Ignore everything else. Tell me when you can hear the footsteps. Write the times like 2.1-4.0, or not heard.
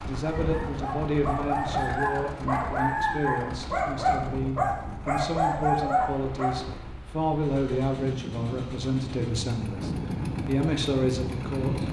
not heard.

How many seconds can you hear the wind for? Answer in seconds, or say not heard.
12 s.